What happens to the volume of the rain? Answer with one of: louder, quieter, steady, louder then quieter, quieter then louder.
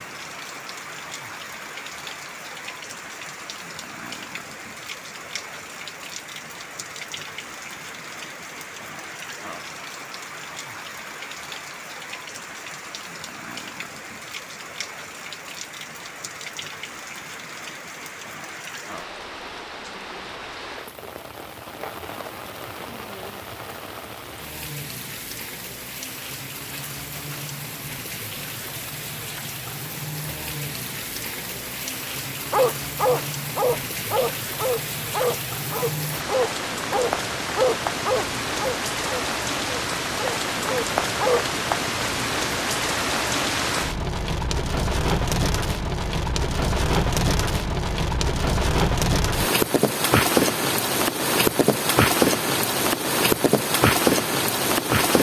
louder.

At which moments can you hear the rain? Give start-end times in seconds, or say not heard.
0.0-55.1.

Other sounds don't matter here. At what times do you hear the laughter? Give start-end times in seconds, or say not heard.
not heard.